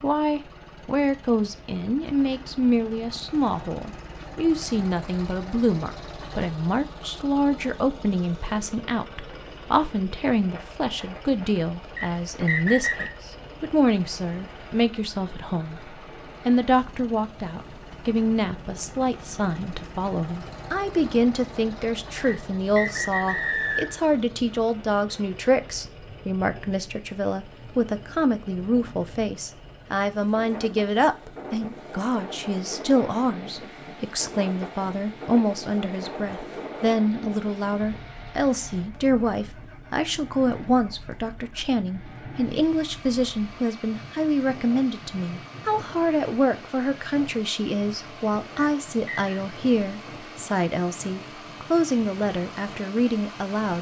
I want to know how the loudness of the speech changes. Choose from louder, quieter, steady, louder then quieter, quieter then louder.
steady.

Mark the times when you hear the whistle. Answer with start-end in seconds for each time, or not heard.
11.9-13.2, 22.2-24.0, 48.5-49.4.